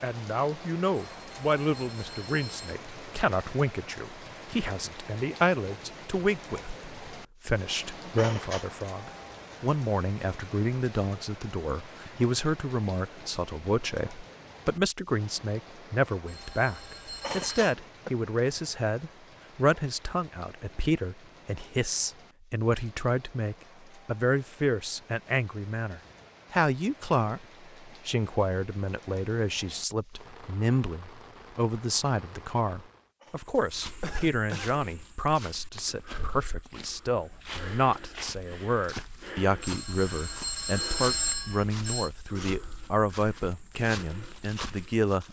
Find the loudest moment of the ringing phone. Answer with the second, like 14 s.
41 s.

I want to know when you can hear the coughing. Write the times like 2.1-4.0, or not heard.
8.2-8.7, 17.2-18.1, 33.2-34.8.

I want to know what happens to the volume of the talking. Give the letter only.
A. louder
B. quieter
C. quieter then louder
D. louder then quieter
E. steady
E.